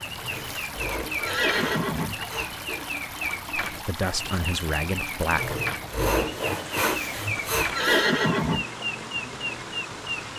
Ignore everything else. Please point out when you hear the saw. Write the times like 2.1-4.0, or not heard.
0.1-2.9, 5.3-8.1.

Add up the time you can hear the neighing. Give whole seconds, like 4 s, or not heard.
4 s.